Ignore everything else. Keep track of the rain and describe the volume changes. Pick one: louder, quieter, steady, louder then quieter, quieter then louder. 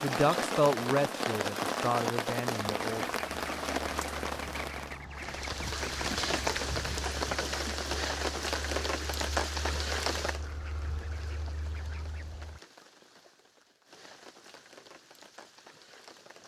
quieter.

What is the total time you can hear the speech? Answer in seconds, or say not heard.
3 s.